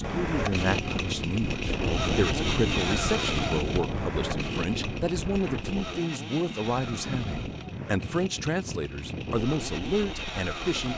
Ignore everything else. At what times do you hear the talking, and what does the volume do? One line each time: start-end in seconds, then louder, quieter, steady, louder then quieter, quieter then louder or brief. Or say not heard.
0.0-10.9 steady.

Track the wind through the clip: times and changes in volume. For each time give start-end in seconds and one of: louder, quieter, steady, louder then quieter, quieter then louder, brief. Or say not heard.
0.0-10.9 quieter.